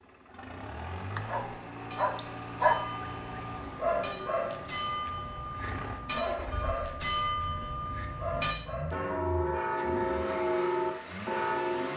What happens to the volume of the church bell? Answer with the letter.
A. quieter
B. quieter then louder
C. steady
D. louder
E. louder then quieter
D.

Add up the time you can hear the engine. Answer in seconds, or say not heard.
12 s.